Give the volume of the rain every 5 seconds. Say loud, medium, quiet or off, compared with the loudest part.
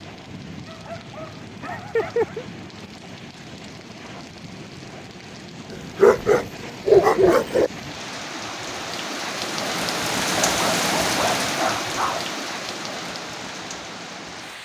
quiet, medium, loud.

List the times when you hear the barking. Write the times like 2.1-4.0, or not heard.
0.7-2.5, 5.7-7.7, 10.4-12.2.